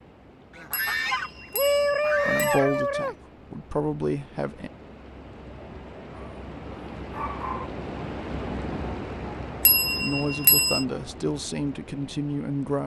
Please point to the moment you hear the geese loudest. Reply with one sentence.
The volume of the geese peaks at 2 seconds.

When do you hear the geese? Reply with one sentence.
The geese can be heard from 0.6 to 3.1 s.